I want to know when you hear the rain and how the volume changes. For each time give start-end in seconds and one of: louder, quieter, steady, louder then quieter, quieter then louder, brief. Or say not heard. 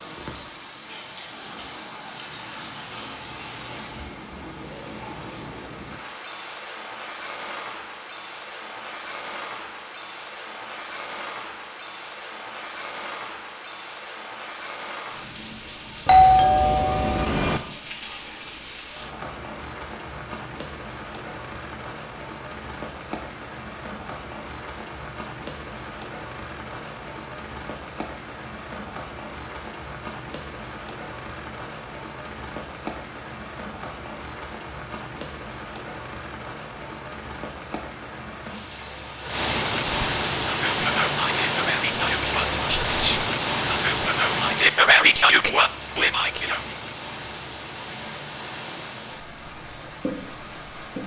0.0-51.0 louder.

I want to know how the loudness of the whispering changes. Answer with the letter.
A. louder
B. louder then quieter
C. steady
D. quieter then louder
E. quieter
A.